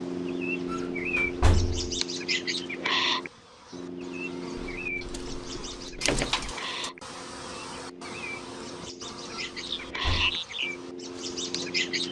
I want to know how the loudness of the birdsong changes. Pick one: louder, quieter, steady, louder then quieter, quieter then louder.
quieter then louder.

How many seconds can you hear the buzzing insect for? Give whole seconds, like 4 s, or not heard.
12 s.